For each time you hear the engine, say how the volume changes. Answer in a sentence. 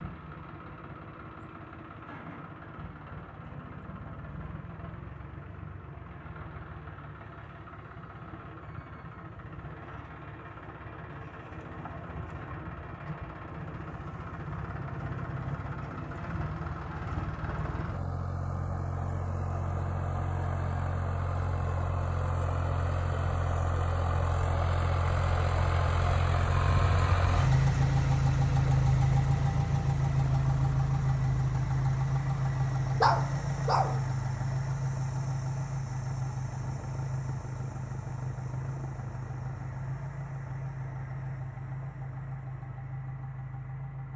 You can hear the engine from 0.0 to 44.1 s, getting louder then quieter.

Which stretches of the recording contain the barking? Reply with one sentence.
You can hear the barking from 33.0 to 34.0 s.